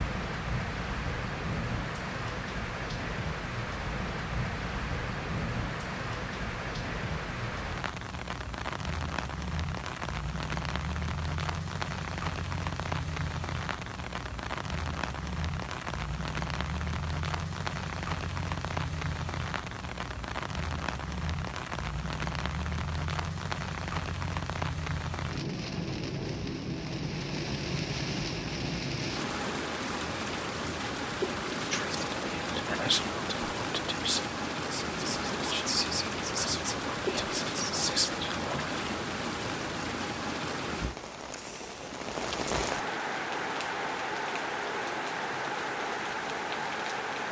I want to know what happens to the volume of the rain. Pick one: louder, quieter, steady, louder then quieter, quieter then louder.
steady.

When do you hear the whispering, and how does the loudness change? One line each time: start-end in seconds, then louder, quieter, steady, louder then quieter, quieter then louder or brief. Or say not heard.
31.7-38.8 steady.